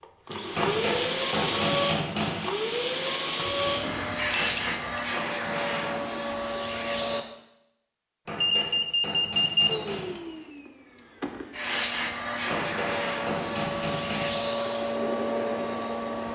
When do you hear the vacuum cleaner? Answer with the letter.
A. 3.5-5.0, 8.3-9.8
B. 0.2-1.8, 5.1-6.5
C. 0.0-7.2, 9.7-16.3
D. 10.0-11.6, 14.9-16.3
C.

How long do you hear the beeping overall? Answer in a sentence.
The beeping can be heard for 3 seconds in total.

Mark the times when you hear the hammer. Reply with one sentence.
You can hear the hammer from 0.6 to 2.5 s, from 4.3 to 6.0 s, from 8.2 to 10.2 s and from 12.5 to 14.4 s.